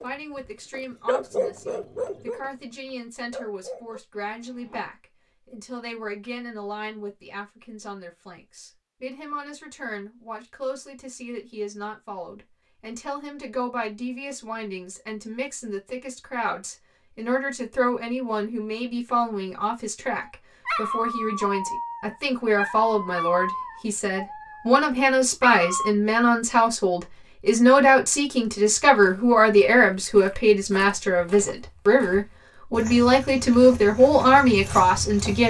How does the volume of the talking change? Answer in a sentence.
The volume of the talking goes up.